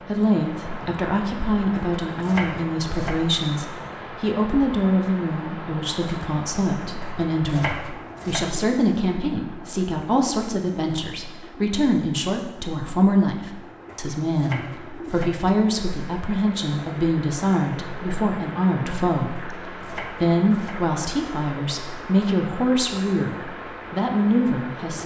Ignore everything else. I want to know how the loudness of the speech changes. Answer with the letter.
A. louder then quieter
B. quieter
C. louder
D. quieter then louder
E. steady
E.